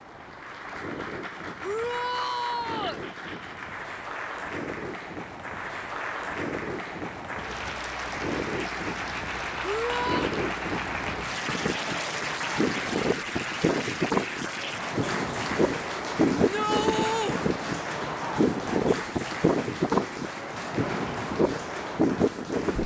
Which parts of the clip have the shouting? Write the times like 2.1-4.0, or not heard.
1.6-3.0, 9.6-10.2, 16.4-17.4.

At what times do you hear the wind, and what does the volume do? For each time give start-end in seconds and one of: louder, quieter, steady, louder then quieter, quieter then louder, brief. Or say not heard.
0.0-22.8 louder.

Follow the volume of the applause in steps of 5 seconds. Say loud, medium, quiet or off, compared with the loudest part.
medium, loud, loud, loud, medium.